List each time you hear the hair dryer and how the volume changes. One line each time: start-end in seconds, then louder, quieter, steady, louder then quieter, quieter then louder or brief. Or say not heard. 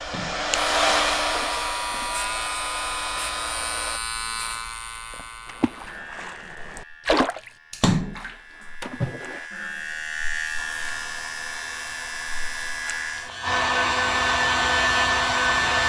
0.0-4.0 quieter
10.6-15.8 louder.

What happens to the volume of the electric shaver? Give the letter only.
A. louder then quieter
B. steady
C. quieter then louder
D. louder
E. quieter
C.